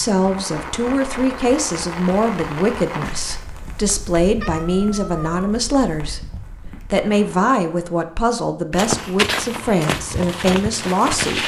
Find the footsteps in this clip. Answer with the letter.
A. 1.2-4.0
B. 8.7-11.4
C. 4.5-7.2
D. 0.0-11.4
B.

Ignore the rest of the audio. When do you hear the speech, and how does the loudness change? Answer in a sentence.
The speech can be heard from 0.0 to 11.4 s, at a steady volume.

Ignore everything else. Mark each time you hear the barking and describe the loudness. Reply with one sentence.
You can't hear the barking here.